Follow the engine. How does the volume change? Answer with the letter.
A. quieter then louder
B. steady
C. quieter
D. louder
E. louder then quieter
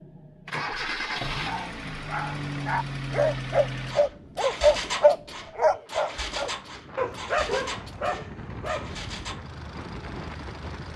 C.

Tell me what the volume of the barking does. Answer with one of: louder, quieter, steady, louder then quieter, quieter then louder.
louder then quieter.